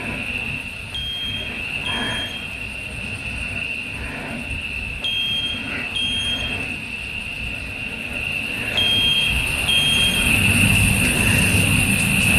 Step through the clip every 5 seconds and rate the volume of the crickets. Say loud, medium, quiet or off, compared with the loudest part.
medium, medium, loud.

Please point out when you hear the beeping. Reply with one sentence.
The beeping can be heard from 0.9 to 2.5 s, from 5.0 to 6.7 s and from 8.8 to 10.2 s.